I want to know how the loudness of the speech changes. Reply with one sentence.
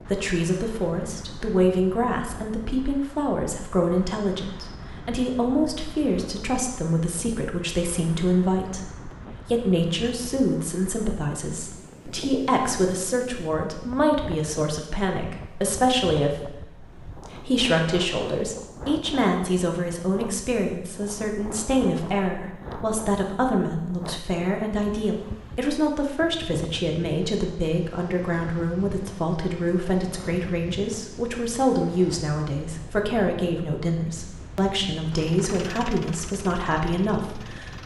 The loudness of the speech stays about the same.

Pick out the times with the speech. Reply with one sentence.
The speech can be heard from 0.0 to 37.8 s.